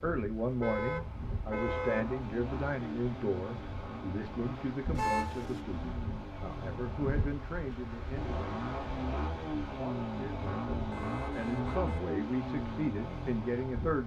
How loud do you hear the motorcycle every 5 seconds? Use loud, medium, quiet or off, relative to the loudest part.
medium, loud, loud.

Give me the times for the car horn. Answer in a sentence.
You can hear the car horn from 0.4 to 2.1 s, from 5.0 to 5.6 s and from 10.9 to 12.0 s.